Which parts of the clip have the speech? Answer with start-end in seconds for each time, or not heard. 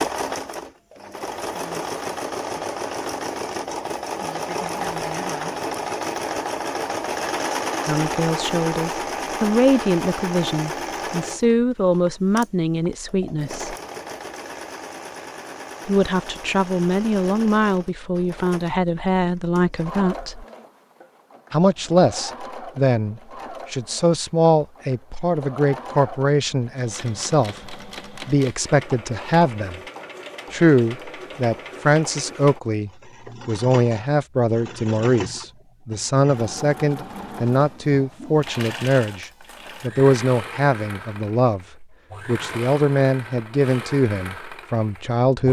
7.8-13.8, 15.8-20.4, 21.5-29.8, 30.5-45.4.